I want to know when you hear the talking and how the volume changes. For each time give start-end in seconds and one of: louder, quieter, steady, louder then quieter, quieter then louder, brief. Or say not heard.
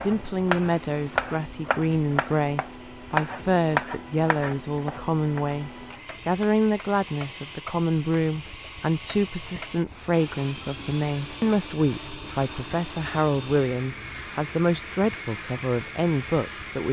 0.0-16.8 steady.